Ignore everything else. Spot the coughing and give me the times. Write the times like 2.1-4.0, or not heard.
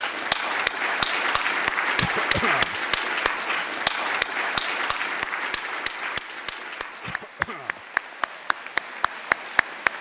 1.9-2.8, 7.0-7.8.